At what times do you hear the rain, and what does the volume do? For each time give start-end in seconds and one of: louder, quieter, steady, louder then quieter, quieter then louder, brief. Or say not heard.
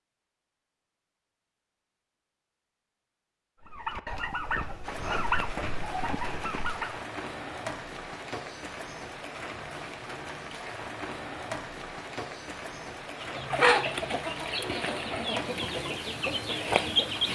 4.8-17.3 steady.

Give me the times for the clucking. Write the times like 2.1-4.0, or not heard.
3.6-7.0, 13.2-17.3.